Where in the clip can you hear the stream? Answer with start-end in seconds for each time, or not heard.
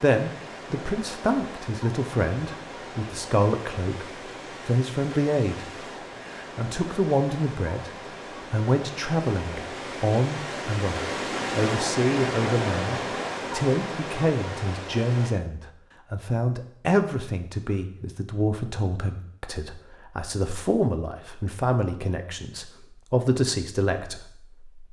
0.0-15.3.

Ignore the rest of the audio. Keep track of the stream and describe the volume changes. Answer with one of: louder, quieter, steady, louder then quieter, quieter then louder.
louder.